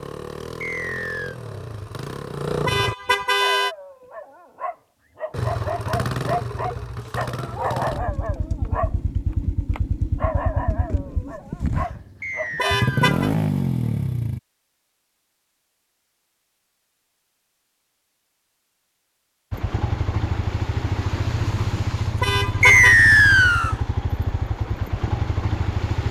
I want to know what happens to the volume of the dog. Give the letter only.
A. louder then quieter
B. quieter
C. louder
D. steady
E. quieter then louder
A.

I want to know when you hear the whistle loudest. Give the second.
23 s.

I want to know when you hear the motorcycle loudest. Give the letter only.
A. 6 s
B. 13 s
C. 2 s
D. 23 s
B.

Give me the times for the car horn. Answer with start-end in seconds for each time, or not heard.
2.6-3.8, 12.6-13.3, 22.2-22.9.